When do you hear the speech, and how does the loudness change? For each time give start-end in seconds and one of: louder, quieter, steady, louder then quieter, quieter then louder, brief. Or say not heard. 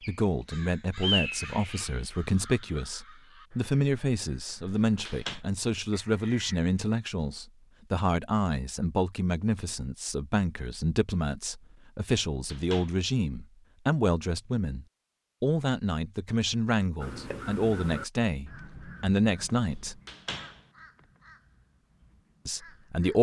0.1-20.0 steady
22.4-23.1 brief.